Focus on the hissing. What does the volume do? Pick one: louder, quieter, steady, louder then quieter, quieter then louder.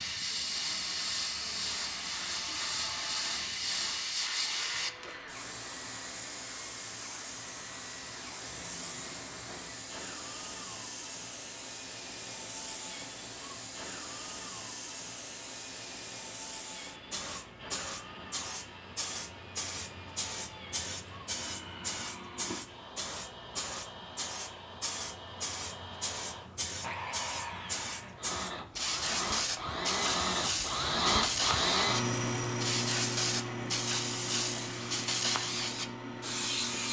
quieter then louder.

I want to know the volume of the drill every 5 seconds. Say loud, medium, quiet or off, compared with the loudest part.
quiet, quiet, quiet, quiet, quiet, medium, loud, medium.